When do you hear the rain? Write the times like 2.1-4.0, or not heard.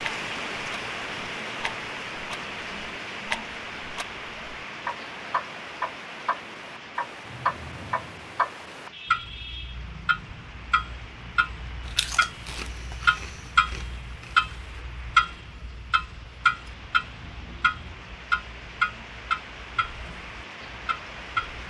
0.0-21.6.